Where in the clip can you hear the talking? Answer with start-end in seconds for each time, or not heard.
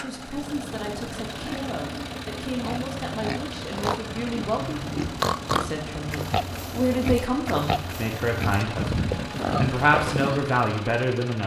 0.0-11.4.